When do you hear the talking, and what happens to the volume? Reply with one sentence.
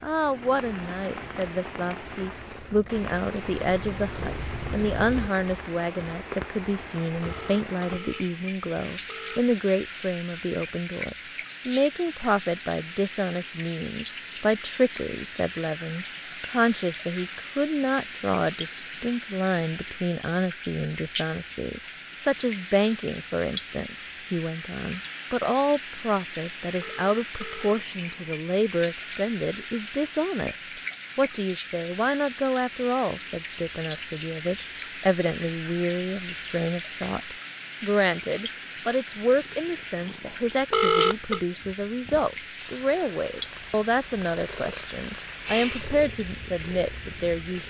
You can hear the talking from 0.0 to 47.6 s, at a steady volume.